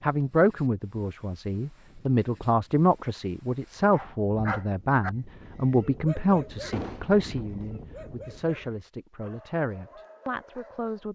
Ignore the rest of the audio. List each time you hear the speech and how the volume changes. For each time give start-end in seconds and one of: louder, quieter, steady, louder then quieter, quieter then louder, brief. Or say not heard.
0.0-11.1 quieter.